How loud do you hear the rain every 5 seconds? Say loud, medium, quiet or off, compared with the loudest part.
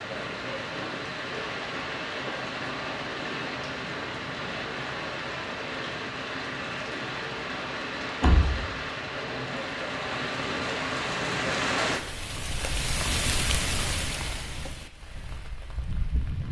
loud, loud, loud, medium.